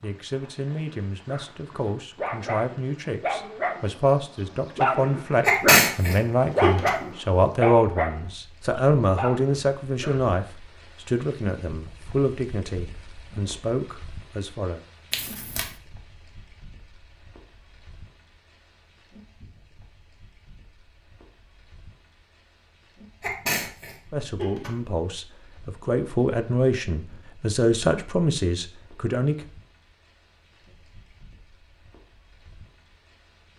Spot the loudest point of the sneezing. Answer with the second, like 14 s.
6 s.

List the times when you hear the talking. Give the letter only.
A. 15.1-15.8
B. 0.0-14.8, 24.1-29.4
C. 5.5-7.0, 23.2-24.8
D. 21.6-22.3
B.